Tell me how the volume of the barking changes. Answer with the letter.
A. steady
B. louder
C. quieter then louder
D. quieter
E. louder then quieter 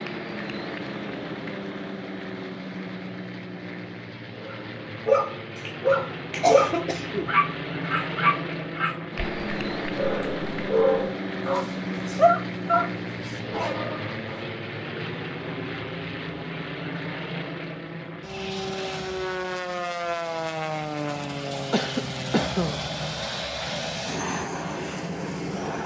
D.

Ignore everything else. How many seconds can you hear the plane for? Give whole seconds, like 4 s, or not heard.
26 s.